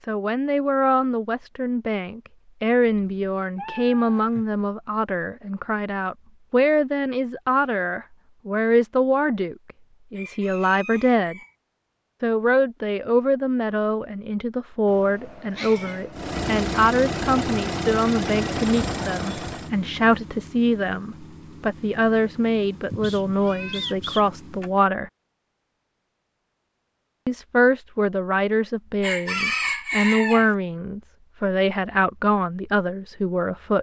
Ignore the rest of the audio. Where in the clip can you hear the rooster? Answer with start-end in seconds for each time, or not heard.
10.2-11.6, 29.0-30.5.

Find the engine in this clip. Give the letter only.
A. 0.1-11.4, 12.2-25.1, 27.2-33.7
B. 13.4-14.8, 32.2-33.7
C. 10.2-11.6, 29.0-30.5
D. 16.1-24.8
D.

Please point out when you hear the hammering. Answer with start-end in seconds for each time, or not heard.
not heard.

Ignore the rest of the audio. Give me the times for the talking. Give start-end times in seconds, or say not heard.
0.1-11.4, 12.2-25.1, 27.2-33.7.